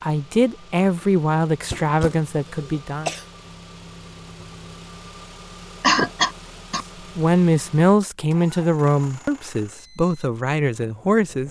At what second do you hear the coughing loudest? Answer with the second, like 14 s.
6 s.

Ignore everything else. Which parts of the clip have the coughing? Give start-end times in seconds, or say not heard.
1.7-3.2, 5.8-6.8.